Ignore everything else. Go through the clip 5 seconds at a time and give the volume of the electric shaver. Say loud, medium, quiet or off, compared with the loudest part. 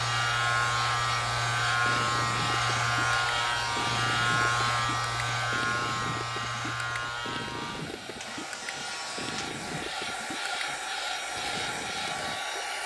loud, medium, quiet.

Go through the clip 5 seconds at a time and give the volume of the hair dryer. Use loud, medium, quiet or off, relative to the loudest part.
loud, medium, loud.